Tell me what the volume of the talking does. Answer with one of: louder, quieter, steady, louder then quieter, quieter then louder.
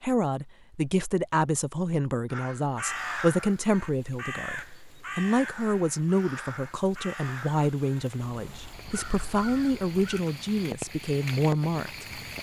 steady.